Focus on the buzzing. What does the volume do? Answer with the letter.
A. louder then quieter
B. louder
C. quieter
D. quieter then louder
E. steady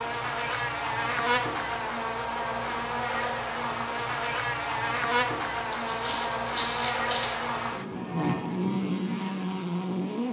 E.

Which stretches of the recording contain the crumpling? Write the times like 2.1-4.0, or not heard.
0.5-1.6, 5.7-7.3.